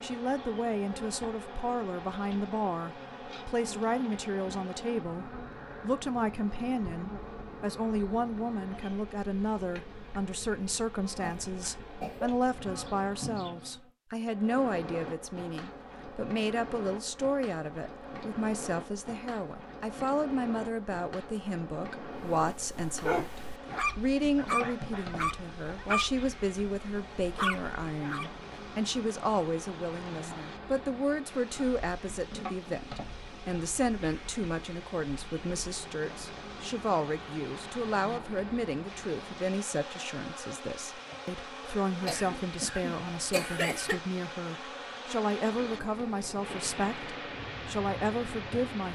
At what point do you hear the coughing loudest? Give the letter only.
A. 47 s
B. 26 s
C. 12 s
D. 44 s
D.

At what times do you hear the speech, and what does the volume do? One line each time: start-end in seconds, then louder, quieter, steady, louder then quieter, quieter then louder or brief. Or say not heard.
0.0-48.9 steady.